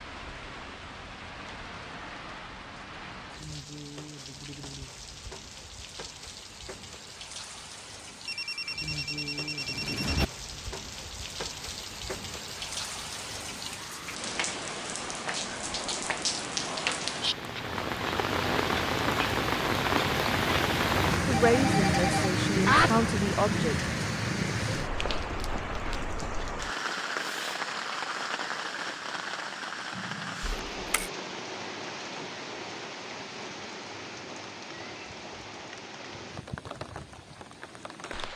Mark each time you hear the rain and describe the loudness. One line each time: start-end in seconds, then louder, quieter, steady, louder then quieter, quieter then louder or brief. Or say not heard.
0.0-38.3 louder then quieter.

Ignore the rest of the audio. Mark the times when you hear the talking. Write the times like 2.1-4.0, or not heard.
21.2-23.8.